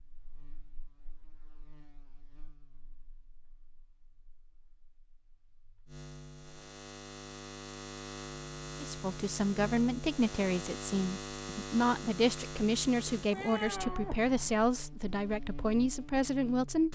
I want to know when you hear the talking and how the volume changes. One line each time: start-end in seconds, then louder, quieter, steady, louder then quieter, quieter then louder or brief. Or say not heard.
8.8-16.8 steady.